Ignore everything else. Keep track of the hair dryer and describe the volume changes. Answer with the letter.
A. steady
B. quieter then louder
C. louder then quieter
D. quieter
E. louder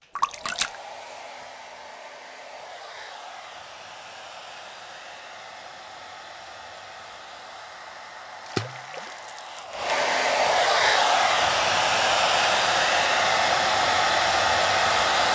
E.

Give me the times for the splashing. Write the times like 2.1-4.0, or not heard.
0.1-0.8, 8.4-9.6.